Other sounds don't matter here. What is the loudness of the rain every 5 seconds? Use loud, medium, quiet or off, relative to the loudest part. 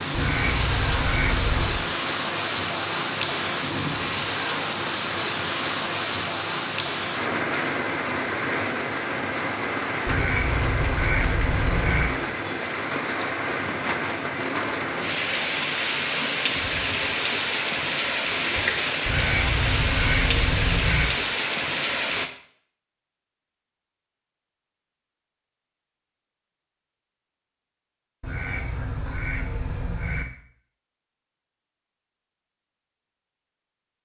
loud, loud, loud, loud, loud, off, off.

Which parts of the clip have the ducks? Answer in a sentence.
The ducks can be heard from 0.1 to 1.9 s, from 10.1 to 12.1 s, from 19.1 to 21.1 s and from 28.2 to 30.2 s.